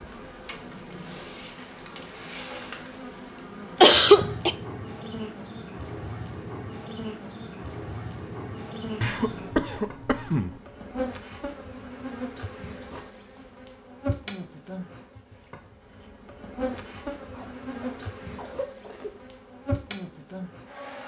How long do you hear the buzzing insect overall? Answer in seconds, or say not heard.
21 s.